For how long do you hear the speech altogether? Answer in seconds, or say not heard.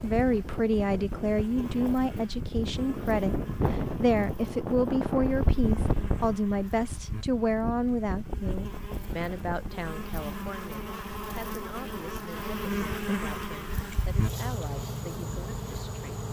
16 s.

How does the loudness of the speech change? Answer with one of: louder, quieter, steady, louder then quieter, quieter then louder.
quieter.